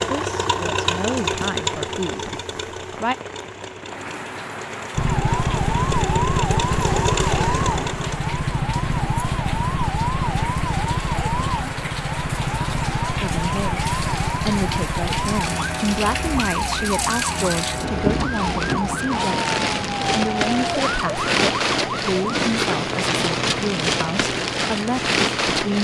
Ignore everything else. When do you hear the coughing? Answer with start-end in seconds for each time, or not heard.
not heard.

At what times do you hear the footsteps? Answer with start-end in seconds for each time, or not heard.
not heard.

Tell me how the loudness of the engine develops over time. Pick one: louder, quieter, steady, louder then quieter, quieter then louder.
quieter then louder.